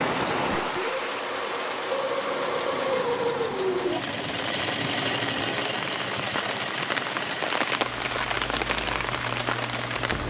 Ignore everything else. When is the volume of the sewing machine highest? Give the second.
3 s.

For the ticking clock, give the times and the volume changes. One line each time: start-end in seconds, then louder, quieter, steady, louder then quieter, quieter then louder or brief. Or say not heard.
not heard.